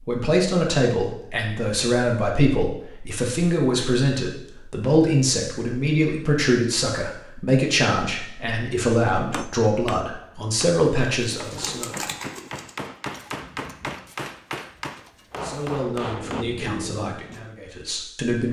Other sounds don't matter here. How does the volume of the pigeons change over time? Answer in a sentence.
The volume of the pigeons goes down, then up.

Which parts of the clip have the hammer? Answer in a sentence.
You can hear the hammer from 9.2 to 16.4 s.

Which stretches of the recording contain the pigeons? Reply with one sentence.
You can hear the pigeons from 11.3 to 17.5 s.